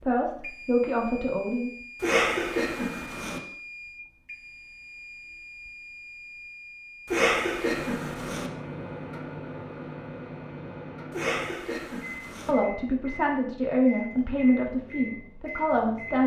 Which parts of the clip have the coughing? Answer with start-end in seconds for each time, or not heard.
2.0-3.4, 7.1-8.5, 11.1-12.6.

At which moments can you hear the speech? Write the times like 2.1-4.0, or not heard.
0.0-1.7, 12.4-16.2.